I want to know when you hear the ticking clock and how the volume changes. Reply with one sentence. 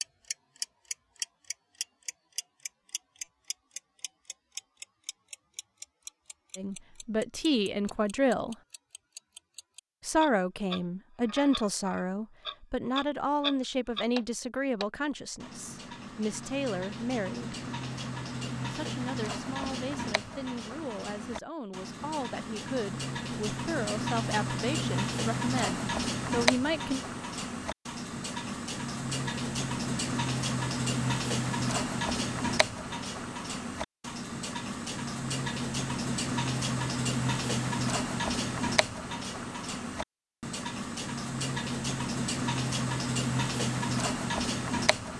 You can hear the ticking clock from 0.0 to 45.1 s, getting louder.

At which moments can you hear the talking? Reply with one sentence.
The talking can be heard from 6.5 to 8.6 s, from 10.0 to 17.6 s and from 18.6 to 27.0 s.